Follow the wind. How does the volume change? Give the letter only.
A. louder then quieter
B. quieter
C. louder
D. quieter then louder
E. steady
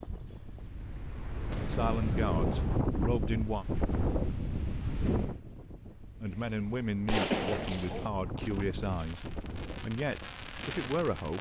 B.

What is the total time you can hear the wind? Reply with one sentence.
You can hear the wind for 11 seconds altogether.